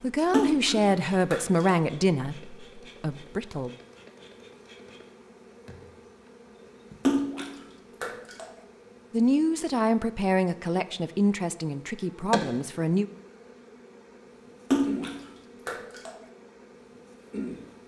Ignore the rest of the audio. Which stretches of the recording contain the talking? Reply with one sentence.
The talking can be heard from 0.0 to 3.8 s and from 9.1 to 13.1 s.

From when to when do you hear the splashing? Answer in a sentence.
You can hear the splashing from 0.3 to 1.8 s, from 7.0 to 8.5 s and from 14.7 to 16.2 s.